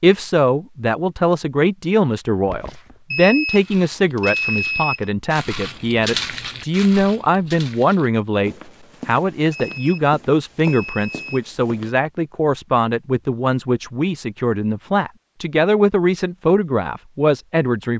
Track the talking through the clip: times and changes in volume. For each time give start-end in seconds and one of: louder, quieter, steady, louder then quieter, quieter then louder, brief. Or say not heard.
0.0-17.9 steady.